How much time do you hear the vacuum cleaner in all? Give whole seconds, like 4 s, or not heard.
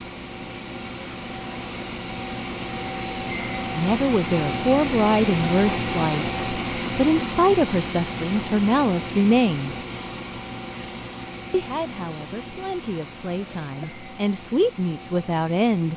16 s.